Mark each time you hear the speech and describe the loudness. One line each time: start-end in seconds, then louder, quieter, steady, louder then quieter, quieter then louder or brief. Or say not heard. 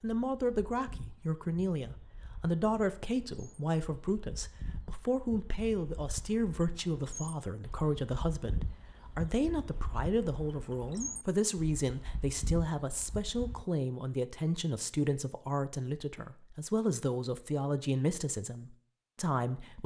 0.0-19.8 steady.